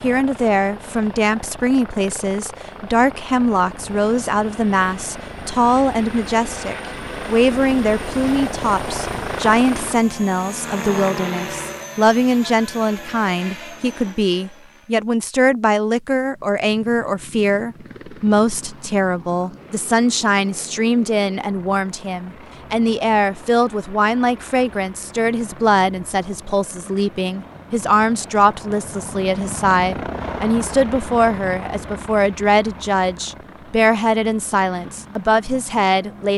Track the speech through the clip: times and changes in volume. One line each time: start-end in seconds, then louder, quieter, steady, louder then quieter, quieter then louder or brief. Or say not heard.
0.0-36.3 steady.